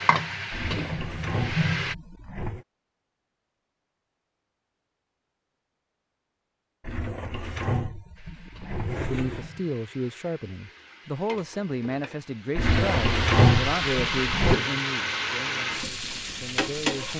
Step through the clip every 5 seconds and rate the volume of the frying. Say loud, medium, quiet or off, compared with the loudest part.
loud, quiet, loud, loud.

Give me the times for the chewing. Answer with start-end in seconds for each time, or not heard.
not heard.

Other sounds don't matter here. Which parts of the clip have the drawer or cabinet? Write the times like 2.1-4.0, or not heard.
0.5-2.6, 6.8-9.5, 12.6-14.6.